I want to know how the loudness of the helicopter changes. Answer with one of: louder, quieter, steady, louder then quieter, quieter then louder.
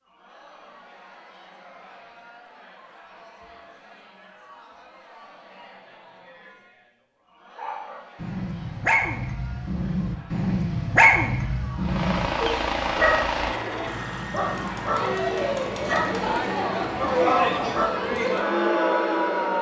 quieter.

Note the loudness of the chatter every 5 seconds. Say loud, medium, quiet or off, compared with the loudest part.
quiet, quiet, quiet, loud.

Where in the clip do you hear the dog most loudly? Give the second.
11 s.